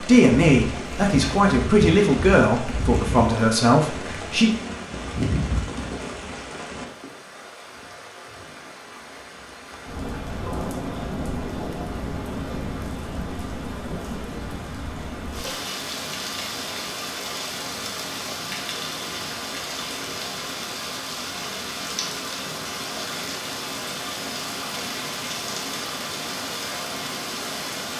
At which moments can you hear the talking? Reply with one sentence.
You can hear the talking from 0.0 to 4.5 s.